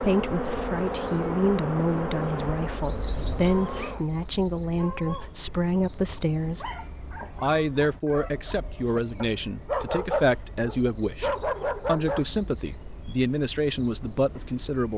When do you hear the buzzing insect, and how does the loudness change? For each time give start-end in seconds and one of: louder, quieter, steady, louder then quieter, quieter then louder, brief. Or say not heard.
0.0-4.0 quieter.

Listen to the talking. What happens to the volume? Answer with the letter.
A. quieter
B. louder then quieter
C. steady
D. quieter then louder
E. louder
C.